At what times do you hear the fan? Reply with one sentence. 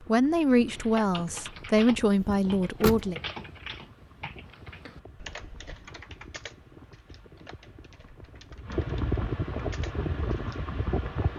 You can hear the fan from 0.0 to 11.3 s.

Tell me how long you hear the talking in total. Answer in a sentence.
You can hear the talking for 3 seconds altogether.